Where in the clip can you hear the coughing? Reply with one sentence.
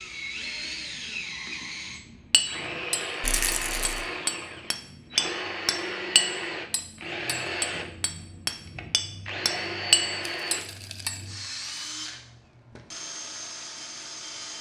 The coughing can't be heard in this clip.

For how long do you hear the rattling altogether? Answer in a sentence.
You can hear the rattling for 2 seconds altogether.